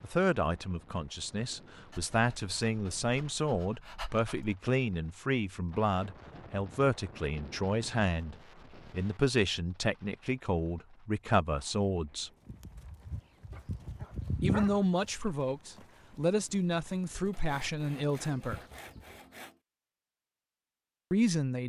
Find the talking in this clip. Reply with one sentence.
You can hear the talking from 0.0 to 12.3 s, from 14.4 to 18.6 s and from 21.1 to 21.6 s.